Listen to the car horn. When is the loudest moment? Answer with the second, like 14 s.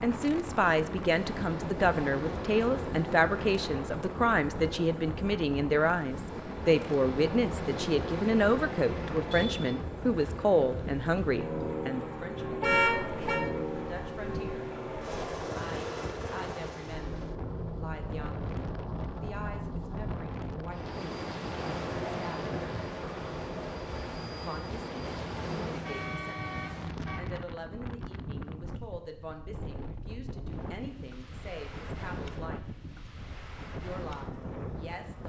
13 s.